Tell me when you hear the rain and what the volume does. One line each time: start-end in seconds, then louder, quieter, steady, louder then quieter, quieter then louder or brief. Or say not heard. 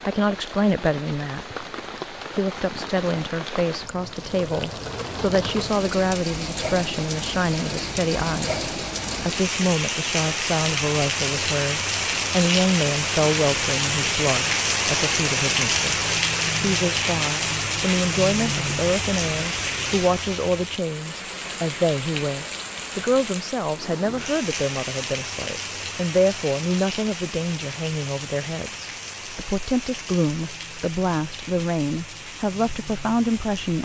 0.0-33.7 louder then quieter.